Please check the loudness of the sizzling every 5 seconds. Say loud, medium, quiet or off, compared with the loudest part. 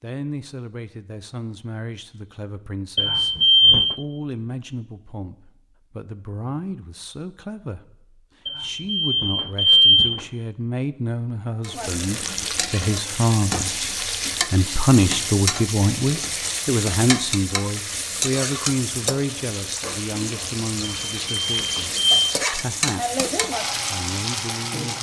off, off, loud, loud, loud.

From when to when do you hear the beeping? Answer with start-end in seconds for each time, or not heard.
3.0-4.0, 8.4-10.2, 21.1-22.4.